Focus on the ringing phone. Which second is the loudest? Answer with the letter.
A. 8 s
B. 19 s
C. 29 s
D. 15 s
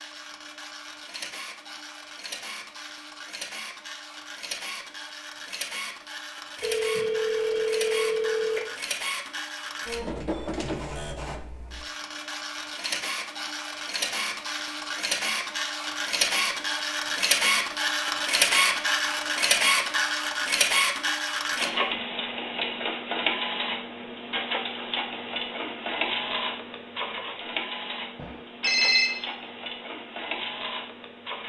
C.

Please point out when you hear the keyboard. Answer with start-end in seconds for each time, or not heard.
not heard.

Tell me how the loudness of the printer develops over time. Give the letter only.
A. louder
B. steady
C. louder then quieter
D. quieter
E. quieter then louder
C.